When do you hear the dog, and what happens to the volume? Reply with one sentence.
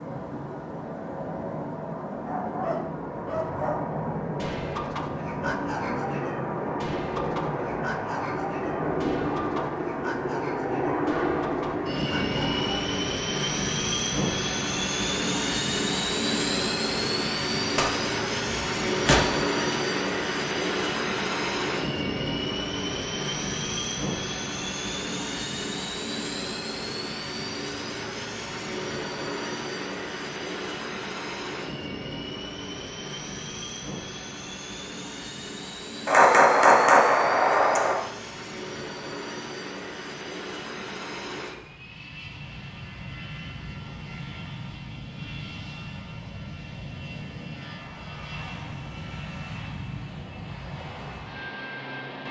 The dog can be heard from 2.2 to 12.8 s, getting quieter.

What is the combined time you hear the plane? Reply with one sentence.
The plane can be heard for 52 seconds in total.